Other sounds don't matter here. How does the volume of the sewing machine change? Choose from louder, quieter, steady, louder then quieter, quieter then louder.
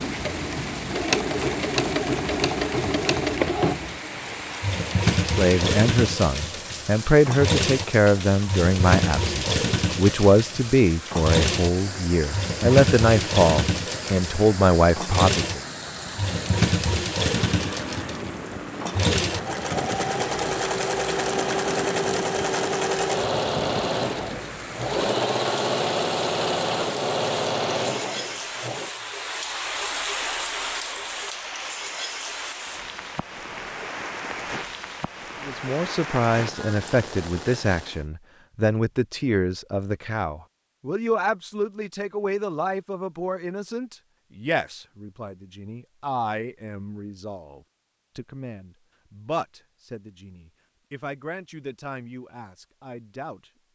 steady.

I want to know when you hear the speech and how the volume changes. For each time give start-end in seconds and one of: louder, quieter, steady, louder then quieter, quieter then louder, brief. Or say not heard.
5.2-15.6 steady
35.5-53.5 quieter.